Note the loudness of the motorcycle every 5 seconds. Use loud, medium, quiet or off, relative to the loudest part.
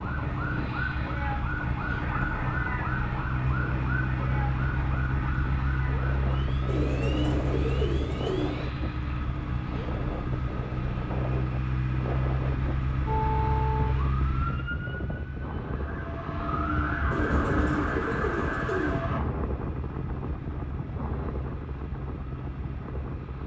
loud, loud, loud, medium, medium.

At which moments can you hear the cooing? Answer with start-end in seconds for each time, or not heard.
6.7-8.6, 17.1-19.1.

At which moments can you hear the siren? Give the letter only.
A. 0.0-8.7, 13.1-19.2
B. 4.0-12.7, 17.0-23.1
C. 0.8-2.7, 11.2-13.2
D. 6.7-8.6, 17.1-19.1
A.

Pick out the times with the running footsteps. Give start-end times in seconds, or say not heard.
not heard.